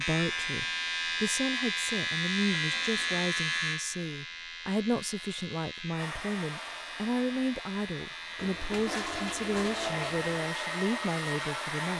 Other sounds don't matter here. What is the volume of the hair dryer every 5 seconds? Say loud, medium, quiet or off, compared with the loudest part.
off, medium, loud.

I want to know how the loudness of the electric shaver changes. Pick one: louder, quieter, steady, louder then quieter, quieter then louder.
quieter.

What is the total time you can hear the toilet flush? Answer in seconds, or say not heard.
3 s.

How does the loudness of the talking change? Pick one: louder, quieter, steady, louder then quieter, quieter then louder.
steady.